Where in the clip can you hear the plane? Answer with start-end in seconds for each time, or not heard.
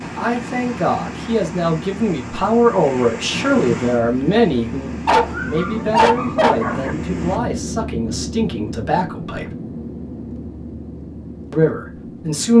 0.0-12.5.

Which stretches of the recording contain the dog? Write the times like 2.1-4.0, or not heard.
5.0-6.9.